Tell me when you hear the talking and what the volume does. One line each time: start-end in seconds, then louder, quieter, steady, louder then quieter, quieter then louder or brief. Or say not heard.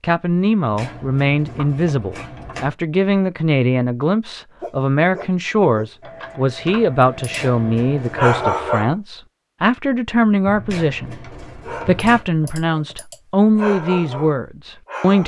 0.0-15.2 steady.